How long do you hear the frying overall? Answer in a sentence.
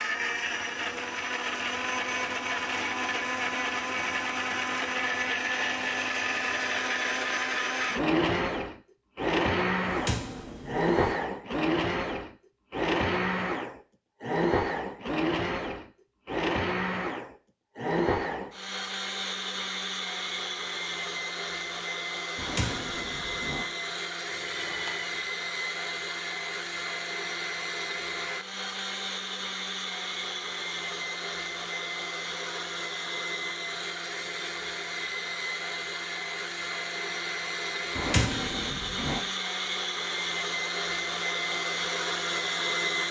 The frying can't be heard in this clip.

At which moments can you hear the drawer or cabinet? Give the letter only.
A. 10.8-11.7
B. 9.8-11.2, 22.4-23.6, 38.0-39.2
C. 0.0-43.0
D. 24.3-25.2
B.